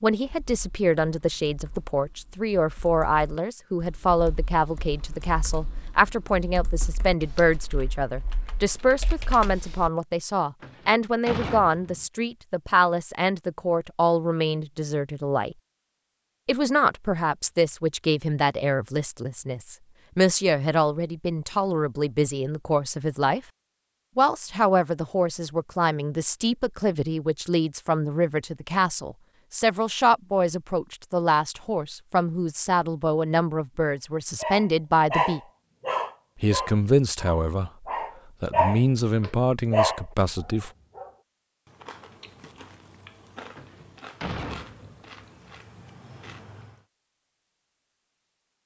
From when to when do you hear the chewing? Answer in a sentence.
The chewing can be heard from 41.6 to 46.9 s.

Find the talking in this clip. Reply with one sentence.
You can hear the talking from 0.0 to 15.6 s, from 16.4 to 23.4 s, from 24.1 to 35.4 s and from 36.4 to 40.7 s.